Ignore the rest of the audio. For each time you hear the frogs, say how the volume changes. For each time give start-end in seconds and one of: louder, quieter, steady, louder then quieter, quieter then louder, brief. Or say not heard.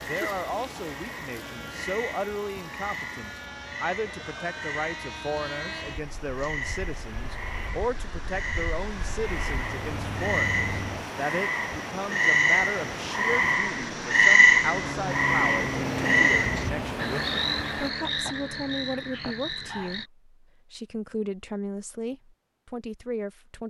0.0-20.1 louder then quieter.